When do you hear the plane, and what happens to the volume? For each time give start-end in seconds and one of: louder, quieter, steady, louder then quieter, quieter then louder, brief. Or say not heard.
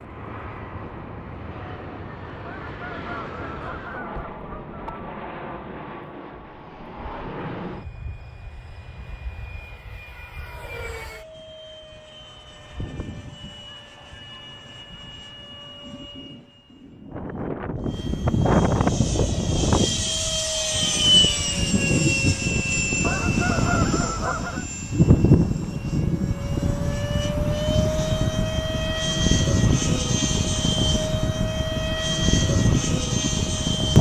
0.0-33.9 louder.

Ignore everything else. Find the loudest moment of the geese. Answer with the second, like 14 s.
24 s.